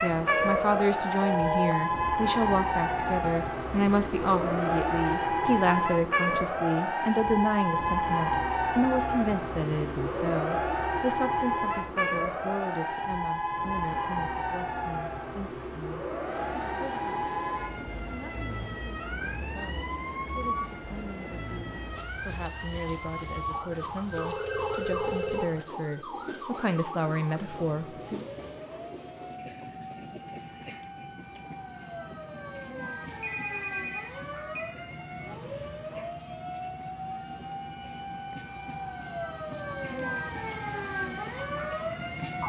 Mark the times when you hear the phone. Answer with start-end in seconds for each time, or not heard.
0.5-1.8, 24.1-25.4, 33.2-34.7.